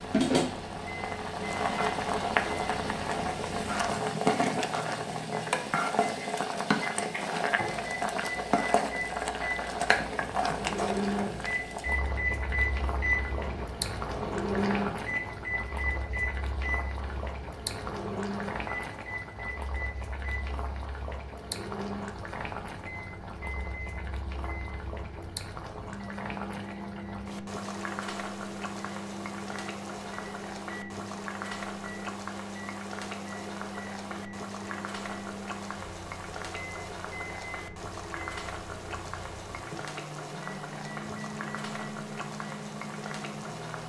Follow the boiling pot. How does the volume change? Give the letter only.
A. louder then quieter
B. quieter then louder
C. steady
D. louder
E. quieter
E.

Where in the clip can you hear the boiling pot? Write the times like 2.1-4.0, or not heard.
0.0-43.8.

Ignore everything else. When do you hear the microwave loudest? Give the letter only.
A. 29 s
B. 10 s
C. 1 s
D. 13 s
D.